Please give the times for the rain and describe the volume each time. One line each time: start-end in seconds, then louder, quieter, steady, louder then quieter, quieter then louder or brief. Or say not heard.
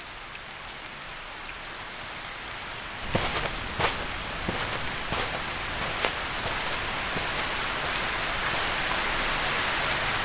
0.0-10.2 louder.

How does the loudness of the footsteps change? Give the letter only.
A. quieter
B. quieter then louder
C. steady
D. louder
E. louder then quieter
A.